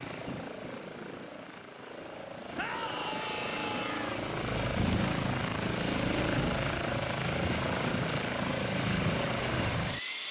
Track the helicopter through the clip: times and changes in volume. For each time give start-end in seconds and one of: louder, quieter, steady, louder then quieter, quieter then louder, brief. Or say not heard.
0.0-10.2 louder.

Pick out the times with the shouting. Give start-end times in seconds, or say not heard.
2.5-4.2.